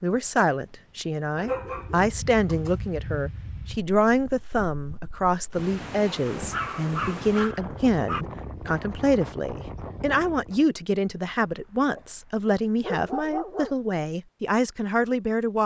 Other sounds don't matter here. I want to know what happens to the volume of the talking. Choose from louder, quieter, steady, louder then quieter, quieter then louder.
steady.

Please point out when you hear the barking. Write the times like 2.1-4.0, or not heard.
1.4-2.8, 6.3-8.2, 11.1-13.8.